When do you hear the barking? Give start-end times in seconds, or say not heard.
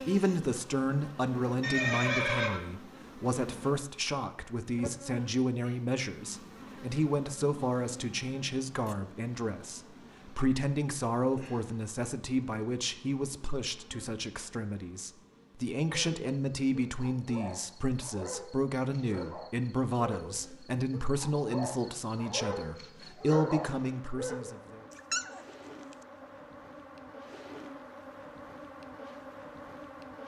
15.9-26.2.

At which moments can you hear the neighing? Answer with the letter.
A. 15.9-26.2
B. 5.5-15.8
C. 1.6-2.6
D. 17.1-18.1
C.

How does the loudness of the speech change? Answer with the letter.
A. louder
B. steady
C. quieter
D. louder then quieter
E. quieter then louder
B.